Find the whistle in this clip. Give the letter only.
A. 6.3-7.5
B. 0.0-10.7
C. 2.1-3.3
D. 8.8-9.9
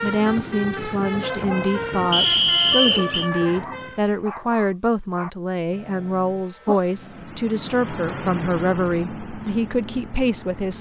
C.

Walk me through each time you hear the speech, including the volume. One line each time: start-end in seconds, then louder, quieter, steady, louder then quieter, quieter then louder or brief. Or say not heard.
0.0-10.7 steady.